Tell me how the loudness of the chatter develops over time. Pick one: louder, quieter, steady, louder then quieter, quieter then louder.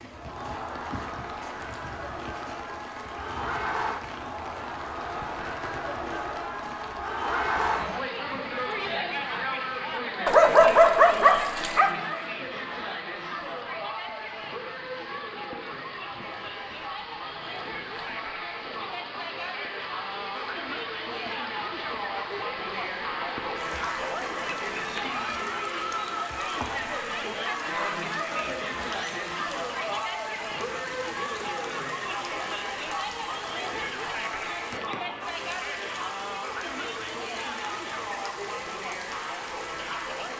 steady.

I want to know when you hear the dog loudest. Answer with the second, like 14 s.
11 s.